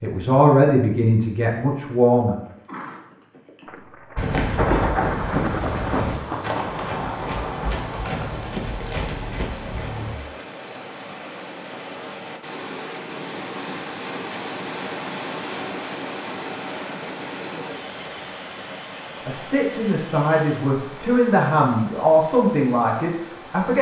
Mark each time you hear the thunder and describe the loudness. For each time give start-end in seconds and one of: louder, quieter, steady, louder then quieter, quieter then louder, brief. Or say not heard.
3.6-7.9 quieter.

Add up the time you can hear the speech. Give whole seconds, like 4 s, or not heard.
7 s.